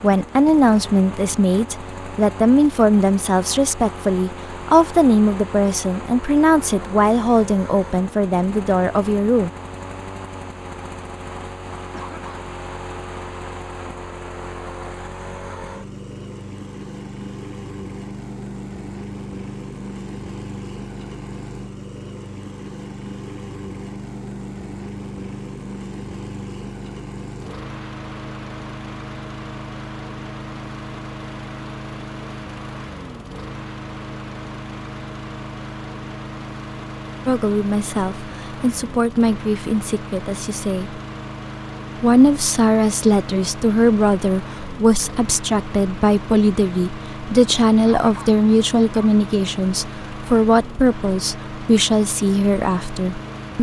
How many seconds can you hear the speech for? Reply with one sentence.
You can hear the speech for 25 seconds altogether.